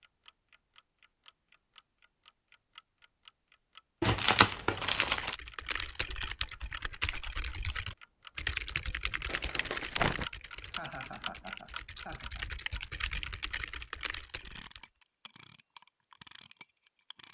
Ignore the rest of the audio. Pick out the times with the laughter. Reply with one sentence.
The laughter can be heard from 10.6 to 12.4 s.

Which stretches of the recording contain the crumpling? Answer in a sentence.
The crumpling can be heard from 4.0 to 5.3 s and from 9.2 to 10.2 s.